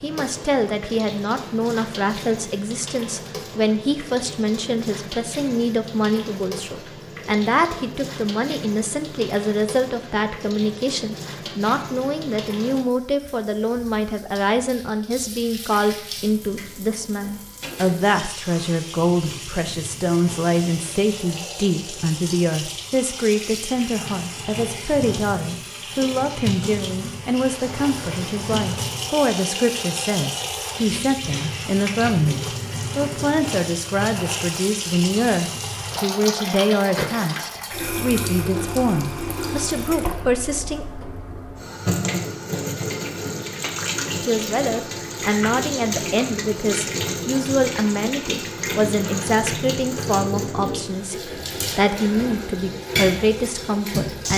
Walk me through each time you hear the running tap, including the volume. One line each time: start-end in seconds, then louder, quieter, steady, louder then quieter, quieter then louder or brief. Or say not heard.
0.0-54.3 louder.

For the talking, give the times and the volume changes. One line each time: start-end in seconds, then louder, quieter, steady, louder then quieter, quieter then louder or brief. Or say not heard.
0.0-40.9 steady
44.2-54.3 steady.